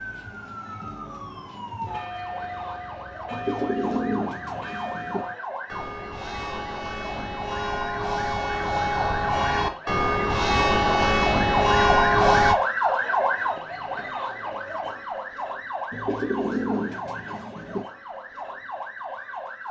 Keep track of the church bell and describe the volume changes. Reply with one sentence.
The volume of the church bell goes up.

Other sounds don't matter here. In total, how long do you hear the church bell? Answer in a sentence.
You can hear the church bell for 11 seconds altogether.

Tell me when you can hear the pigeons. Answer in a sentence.
You can hear the pigeons from 3.3 to 5.2 s and from 15.9 to 17.9 s.